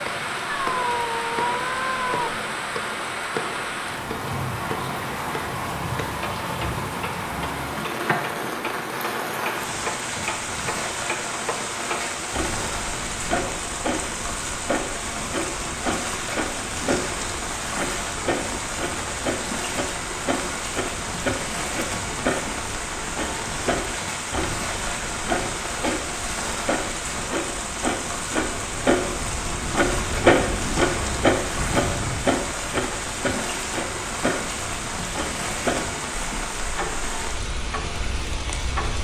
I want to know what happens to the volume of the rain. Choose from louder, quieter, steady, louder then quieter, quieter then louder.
steady.